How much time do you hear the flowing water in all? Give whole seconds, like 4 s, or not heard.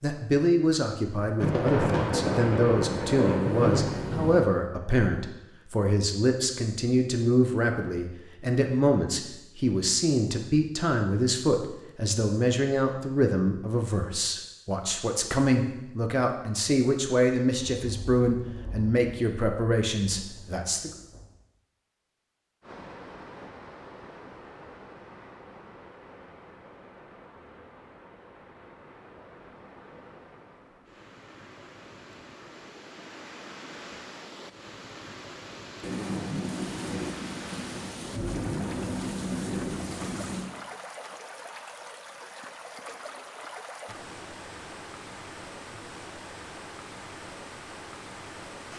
26 s.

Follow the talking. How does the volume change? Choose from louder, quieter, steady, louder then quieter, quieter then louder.
steady.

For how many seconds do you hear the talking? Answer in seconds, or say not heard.
21 s.